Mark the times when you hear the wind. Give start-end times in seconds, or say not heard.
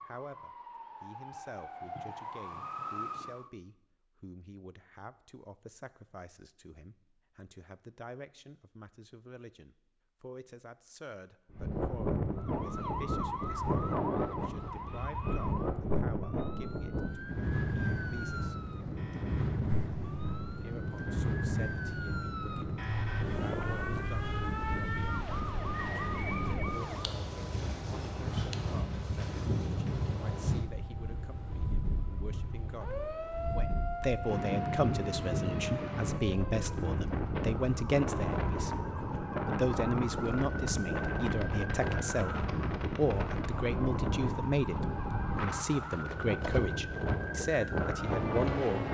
11.5-48.8.